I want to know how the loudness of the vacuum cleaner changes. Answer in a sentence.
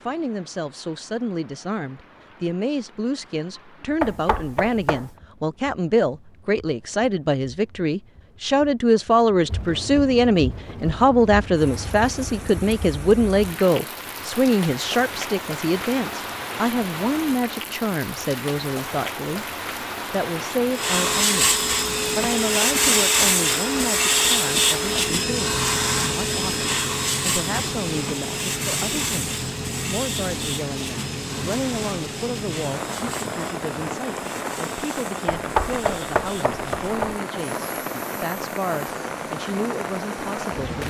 The volume of the vacuum cleaner goes down.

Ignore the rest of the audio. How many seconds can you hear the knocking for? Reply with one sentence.
You can hear the knocking for 3 seconds altogether.